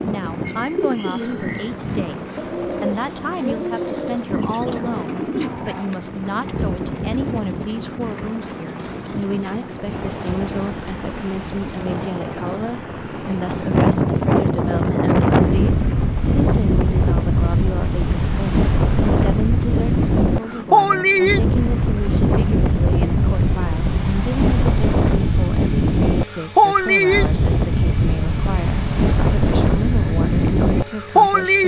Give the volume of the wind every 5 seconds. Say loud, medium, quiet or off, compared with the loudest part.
quiet, quiet, medium, loud, loud, loud, loud.